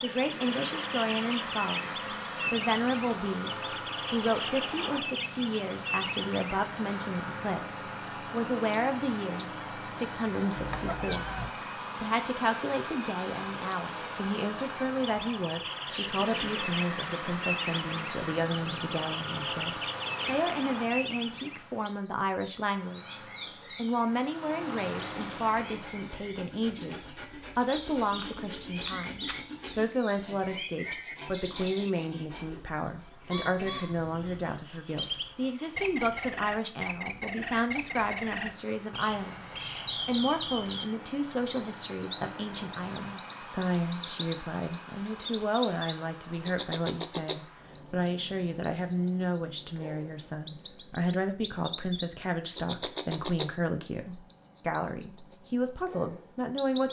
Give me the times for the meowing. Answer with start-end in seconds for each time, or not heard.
10.6-11.6.